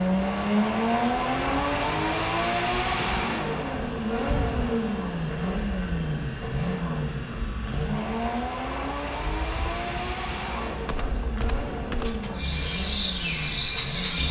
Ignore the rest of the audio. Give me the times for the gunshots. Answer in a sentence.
You can hear the gunshots from 10.8 to 12.3 s.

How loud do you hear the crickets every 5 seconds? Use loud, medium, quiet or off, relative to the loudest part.
medium, medium, loud.